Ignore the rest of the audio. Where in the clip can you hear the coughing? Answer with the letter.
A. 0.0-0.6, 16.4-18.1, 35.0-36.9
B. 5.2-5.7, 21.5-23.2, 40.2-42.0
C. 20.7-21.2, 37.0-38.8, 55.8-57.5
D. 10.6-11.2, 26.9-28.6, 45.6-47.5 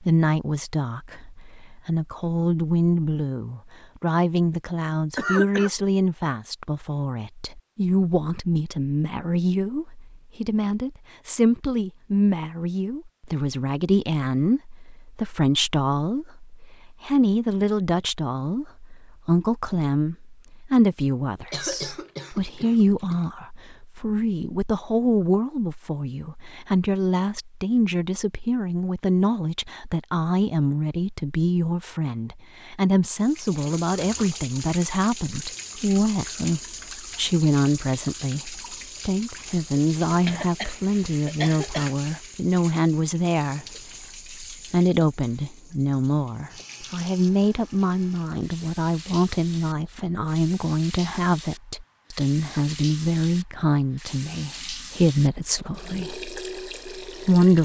B.